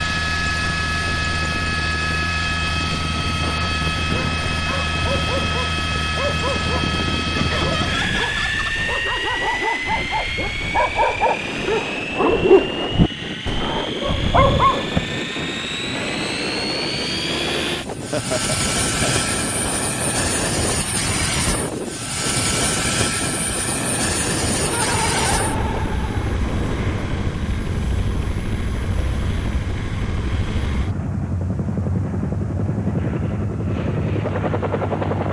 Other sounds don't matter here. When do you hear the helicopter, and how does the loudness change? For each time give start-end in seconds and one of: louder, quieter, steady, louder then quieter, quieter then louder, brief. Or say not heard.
0.0-35.2 steady.